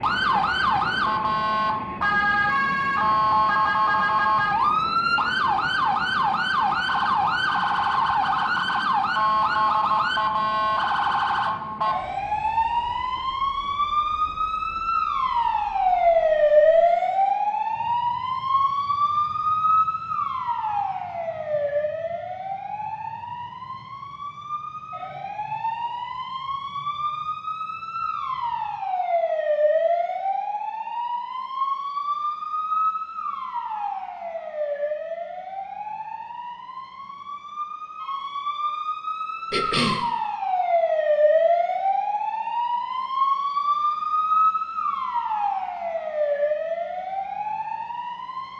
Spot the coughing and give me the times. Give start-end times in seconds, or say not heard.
39.5-40.0.